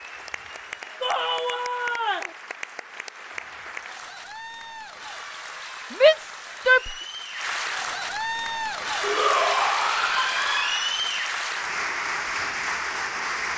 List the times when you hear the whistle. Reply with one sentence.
The whistle can't be heard in this clip.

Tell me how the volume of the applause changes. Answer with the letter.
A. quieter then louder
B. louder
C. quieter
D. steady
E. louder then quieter
B.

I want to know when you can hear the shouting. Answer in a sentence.
The shouting can be heard from 1.0 to 2.4 s, from 5.9 to 7.0 s and from 9.0 to 11.0 s.